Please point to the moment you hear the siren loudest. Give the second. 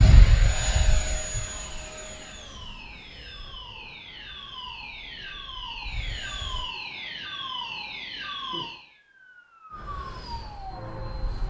8 s.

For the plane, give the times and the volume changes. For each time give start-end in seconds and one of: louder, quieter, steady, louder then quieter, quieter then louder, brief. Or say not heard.
0.0-6.7 quieter then louder
9.9-11.4 brief.